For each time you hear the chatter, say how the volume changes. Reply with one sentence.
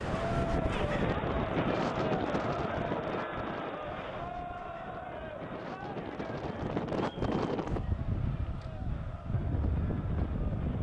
You can hear the chatter from 0.0 to 10.7 s, getting quieter.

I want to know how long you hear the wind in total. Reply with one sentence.
You can hear the wind for 11 seconds altogether.